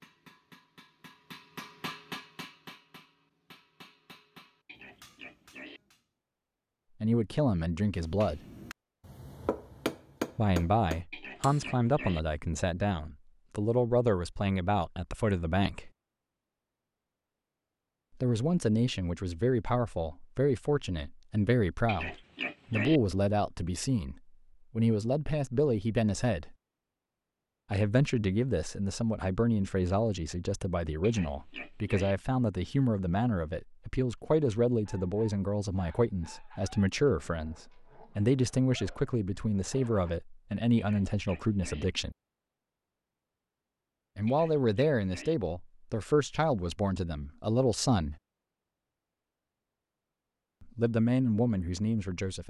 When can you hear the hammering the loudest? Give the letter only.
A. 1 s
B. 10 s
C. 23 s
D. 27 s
B.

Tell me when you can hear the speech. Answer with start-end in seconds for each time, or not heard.
7.0-8.4, 10.3-15.9, 18.2-26.6, 27.7-42.1, 44.1-48.1, 50.6-52.4.